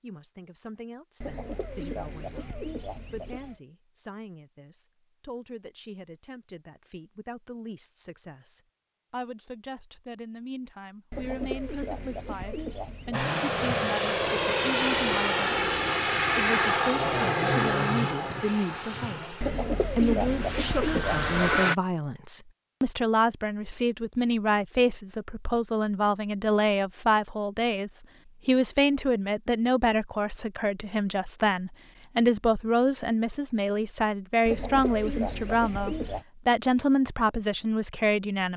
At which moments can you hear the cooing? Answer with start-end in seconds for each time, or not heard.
1.2-3.6, 11.1-13.2, 19.4-21.6, 34.5-36.2.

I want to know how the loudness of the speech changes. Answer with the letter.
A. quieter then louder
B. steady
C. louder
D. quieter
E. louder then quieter
C.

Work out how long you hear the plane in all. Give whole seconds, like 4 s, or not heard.
9 s.